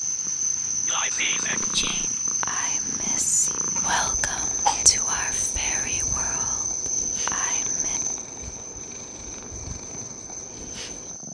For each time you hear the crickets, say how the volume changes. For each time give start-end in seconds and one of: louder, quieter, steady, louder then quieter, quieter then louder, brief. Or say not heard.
0.0-11.3 quieter.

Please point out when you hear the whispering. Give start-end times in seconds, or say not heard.
0.8-8.0.